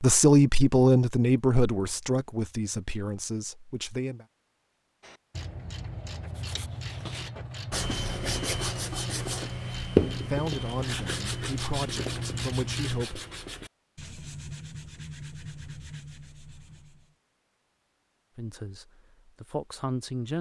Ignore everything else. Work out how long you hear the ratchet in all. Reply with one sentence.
You can hear the ratchet for 8 seconds altogether.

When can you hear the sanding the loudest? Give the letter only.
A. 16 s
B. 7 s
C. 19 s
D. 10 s
D.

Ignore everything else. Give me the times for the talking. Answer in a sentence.
You can hear the talking from 0.0 to 4.2 s, from 10.2 to 13.2 s and from 18.4 to 20.3 s.